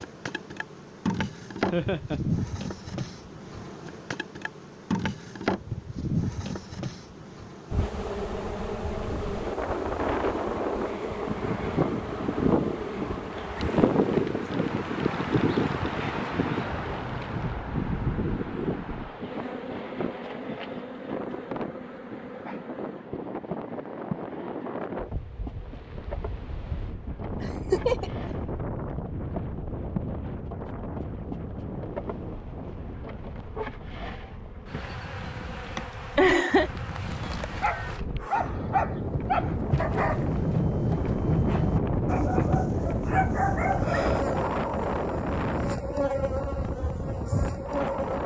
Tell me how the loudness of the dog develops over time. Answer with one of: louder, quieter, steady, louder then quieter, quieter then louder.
steady.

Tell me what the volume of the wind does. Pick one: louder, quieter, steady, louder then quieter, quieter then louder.
quieter then louder.